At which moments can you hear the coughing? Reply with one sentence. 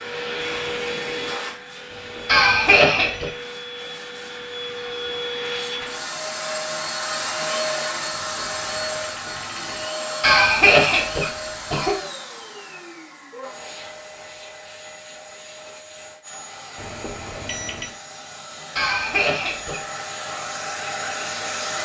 You can hear the coughing from 2.2 to 3.3 s, from 10.2 to 11.9 s and from 18.8 to 19.8 s.